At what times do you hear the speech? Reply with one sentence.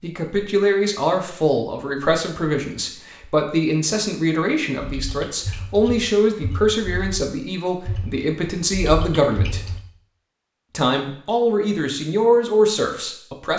The speech can be heard from 0.0 to 9.6 s and from 10.7 to 13.5 s.